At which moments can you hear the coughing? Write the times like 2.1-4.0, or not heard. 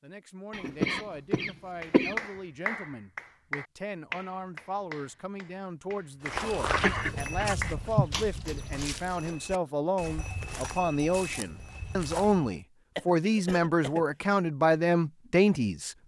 0.5-2.1, 6.8-8.1, 12.9-14.1.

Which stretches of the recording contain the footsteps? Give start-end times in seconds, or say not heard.
6.2-12.6.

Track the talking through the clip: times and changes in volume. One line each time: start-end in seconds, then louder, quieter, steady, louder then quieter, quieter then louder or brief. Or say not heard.
0.0-15.9 louder.